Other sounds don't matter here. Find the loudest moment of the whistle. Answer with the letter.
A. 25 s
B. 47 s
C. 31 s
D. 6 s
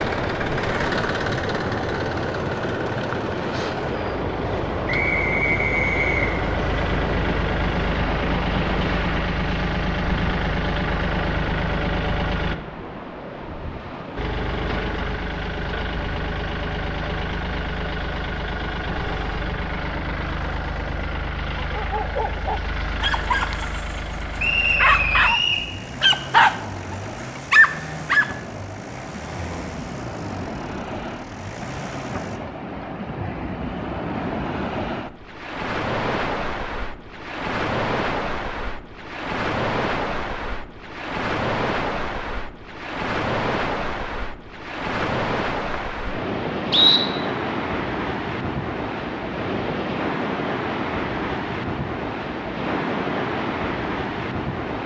B.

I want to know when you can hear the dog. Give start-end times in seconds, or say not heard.
21.6-25.4, 26.0-28.3.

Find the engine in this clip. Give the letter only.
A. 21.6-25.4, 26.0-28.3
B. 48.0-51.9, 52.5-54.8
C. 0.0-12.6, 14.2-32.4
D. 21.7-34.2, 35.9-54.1
C.